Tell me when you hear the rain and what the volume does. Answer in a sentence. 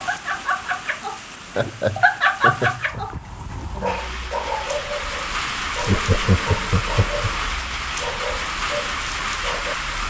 You can hear the rain from 0.0 to 10.0 s, getting louder.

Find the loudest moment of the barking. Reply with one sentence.
The loudest moment of the barking is at 2 seconds.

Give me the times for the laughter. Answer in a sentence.
The laughter can be heard from 1.6 to 3.0 s and from 5.8 to 7.3 s.